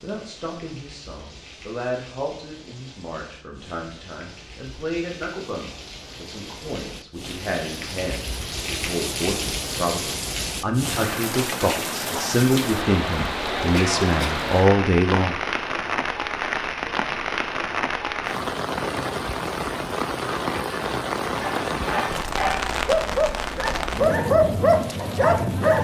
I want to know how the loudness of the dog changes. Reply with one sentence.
The volume of the dog goes up.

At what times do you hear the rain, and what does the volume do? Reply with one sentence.
You can hear the rain from 0.0 to 25.7 s, getting louder.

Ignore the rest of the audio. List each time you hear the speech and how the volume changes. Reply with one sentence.
You can hear the speech from 0.0 to 15.3 s, getting louder.